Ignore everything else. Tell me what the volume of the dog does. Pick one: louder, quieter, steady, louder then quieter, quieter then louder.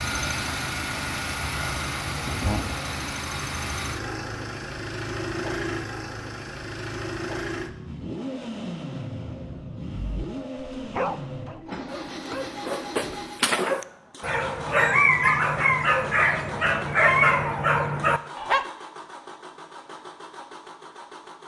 louder.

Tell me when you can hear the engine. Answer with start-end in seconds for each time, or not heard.
0.0-21.4.